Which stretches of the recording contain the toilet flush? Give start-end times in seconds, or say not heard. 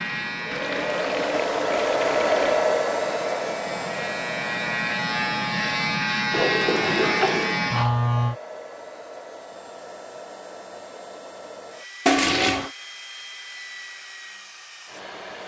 0.5-2.7, 6.3-7.6, 12.1-12.7.